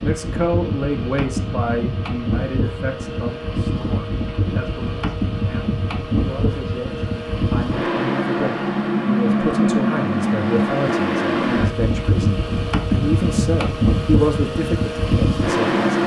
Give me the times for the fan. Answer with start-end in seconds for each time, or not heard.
0.0-16.0.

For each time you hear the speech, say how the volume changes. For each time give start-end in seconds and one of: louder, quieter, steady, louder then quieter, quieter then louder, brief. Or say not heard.
0.0-15.8 quieter then louder.